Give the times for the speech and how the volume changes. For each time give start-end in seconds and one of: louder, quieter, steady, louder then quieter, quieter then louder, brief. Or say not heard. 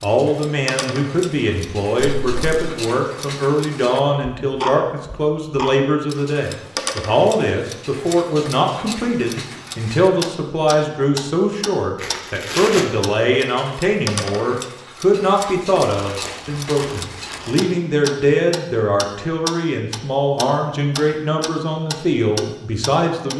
0.0-23.3 steady.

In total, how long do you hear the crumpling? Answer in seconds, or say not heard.
3 s.